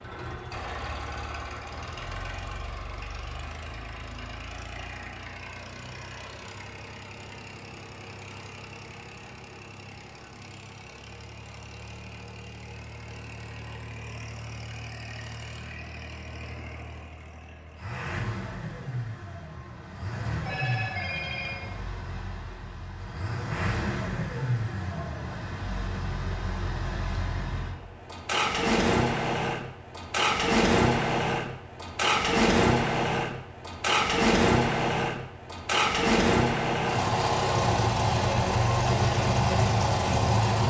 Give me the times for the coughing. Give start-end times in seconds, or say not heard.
not heard.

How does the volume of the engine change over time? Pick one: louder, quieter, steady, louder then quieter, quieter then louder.
louder.